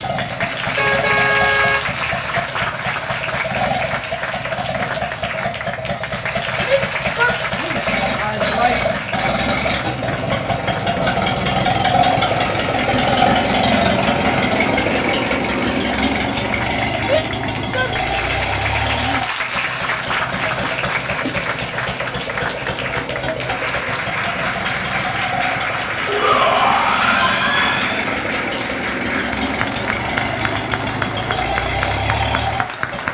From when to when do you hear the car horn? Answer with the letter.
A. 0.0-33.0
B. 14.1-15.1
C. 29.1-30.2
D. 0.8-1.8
D.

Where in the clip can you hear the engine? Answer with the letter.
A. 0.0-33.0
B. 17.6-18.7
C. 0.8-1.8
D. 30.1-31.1
A.